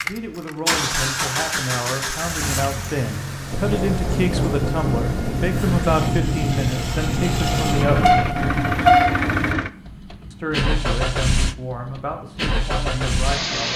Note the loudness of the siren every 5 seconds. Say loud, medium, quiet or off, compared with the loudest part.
loud, loud, off.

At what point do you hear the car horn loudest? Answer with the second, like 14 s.
9 s.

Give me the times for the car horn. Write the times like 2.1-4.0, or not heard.
7.8-9.6.